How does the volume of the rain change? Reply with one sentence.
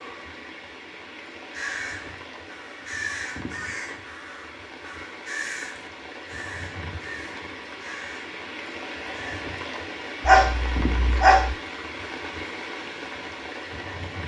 The loudness of the rain goes up.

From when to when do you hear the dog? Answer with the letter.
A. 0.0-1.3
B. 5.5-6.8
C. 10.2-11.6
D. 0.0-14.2
C.